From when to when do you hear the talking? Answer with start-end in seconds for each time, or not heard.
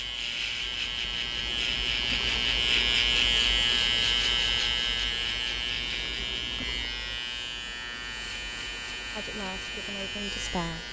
9.1-10.8.